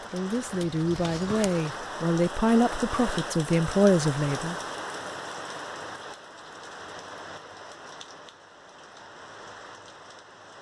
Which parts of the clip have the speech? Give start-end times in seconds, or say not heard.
0.1-4.5.